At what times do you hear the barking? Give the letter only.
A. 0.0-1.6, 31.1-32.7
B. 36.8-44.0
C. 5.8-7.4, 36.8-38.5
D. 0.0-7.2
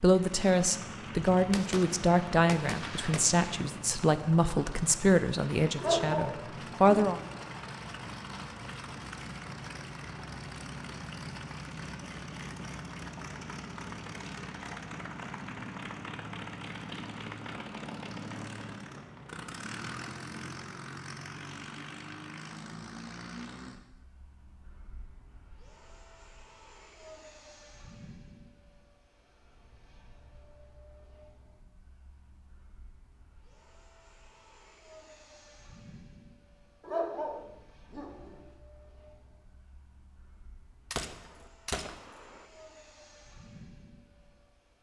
C.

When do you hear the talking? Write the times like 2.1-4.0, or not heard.
0.0-7.2.